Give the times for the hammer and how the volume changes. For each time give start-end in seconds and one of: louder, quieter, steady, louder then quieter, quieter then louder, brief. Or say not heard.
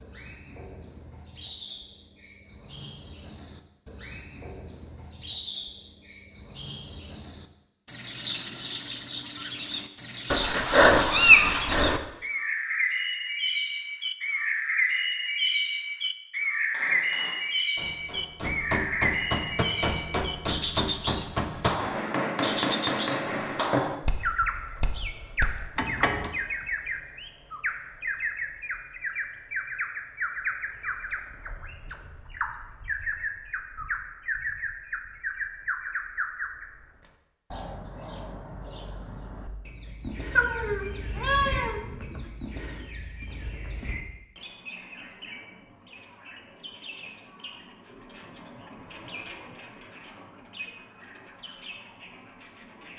16.7-26.3 louder then quieter.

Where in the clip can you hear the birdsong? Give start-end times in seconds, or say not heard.
0.0-52.9.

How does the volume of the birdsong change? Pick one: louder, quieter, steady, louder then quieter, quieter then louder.
louder then quieter.